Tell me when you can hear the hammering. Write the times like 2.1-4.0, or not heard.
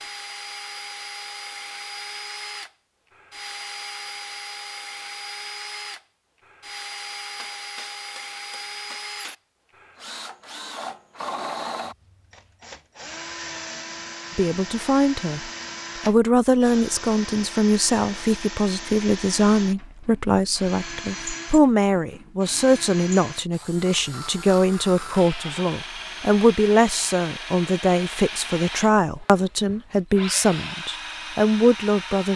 7.3-9.3.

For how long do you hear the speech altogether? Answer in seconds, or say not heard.
18 s.